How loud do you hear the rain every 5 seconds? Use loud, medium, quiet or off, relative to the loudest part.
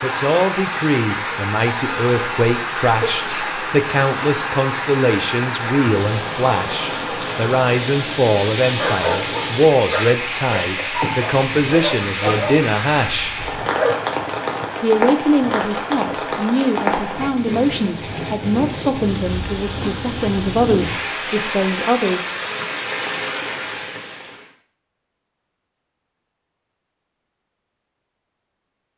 loud, loud, loud, loud, loud, off.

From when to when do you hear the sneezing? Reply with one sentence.
The sneezing can be heard from 3.0 to 3.5 s.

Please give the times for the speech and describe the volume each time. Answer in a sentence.
The speech can be heard from 0.0 to 13.3 s, at a steady volume; and from 14.8 to 22.6 s, at a steady volume.